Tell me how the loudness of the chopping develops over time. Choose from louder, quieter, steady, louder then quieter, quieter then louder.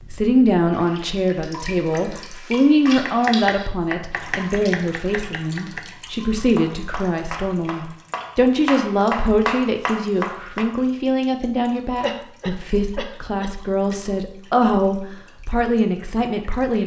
quieter then louder.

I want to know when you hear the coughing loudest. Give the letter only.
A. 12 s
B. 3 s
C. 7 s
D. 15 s
A.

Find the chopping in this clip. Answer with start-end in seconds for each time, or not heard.
2.9-10.7.